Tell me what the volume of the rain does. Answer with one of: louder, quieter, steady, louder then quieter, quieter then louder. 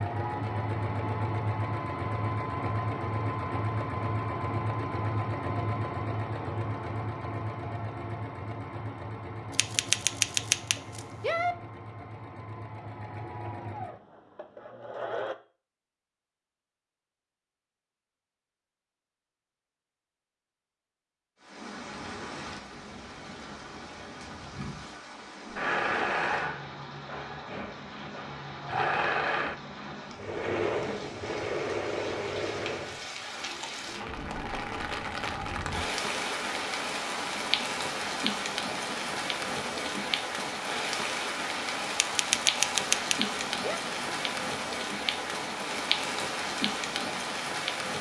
louder.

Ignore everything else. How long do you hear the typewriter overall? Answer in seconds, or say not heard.
4 s.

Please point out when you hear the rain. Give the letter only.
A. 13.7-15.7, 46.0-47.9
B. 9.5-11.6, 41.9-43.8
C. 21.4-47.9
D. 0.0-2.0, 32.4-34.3
C.